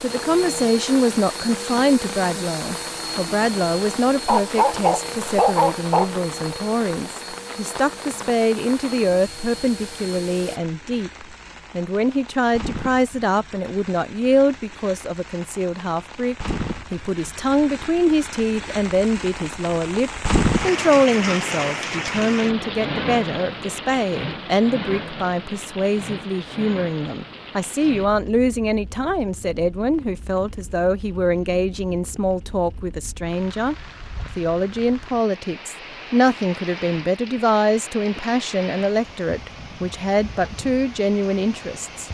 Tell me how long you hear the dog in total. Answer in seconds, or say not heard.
2 s.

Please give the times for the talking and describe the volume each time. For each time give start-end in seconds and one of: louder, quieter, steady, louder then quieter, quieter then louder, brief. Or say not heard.
0.0-33.8 steady
34.4-42.0 steady.